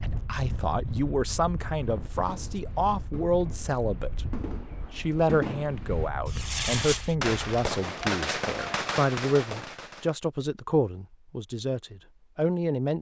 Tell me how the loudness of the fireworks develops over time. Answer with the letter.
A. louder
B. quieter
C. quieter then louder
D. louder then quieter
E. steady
A.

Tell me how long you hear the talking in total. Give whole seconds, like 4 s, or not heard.
12 s.